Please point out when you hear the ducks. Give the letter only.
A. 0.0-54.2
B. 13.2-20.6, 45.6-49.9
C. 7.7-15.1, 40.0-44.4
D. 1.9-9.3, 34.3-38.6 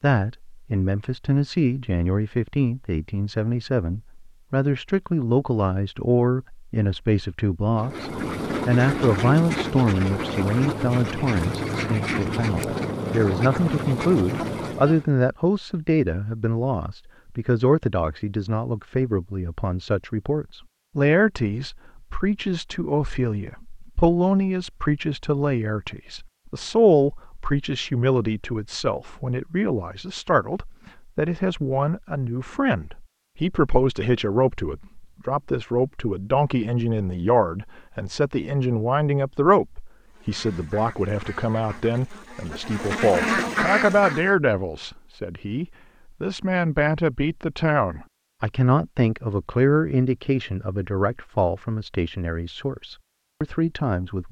C.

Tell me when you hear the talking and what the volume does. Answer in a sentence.
You can hear the talking from 0.0 to 54.2 s, at a steady volume.